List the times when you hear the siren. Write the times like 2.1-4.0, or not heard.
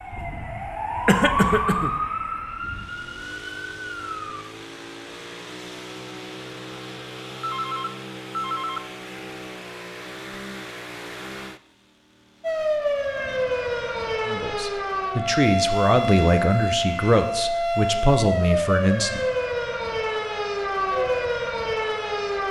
0.0-4.5, 12.4-22.4.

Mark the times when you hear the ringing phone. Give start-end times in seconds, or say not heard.
7.4-8.8.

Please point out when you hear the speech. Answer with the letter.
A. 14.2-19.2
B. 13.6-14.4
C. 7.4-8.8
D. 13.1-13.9
A.